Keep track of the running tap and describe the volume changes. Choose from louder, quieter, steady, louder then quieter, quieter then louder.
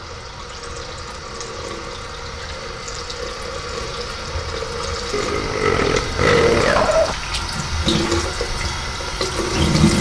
louder.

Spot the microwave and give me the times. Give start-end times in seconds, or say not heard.
not heard.